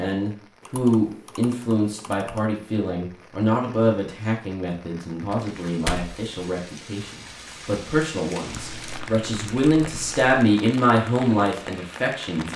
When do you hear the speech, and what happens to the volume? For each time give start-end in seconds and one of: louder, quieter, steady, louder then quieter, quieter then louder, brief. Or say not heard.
0.0-12.5 quieter then louder.